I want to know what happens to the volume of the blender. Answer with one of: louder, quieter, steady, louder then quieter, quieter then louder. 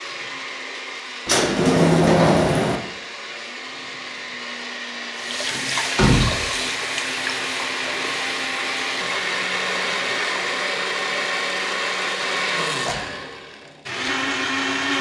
louder.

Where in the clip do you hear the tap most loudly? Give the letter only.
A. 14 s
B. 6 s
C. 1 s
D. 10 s
B.